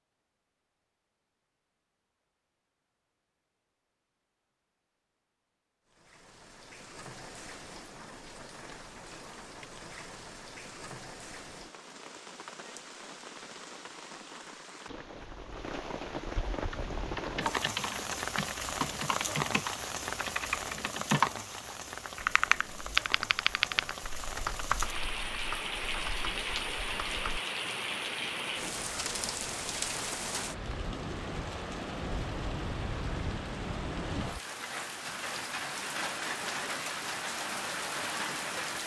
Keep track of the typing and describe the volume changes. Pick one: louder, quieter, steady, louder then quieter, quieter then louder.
louder then quieter.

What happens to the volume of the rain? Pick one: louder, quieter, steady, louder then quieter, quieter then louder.
louder.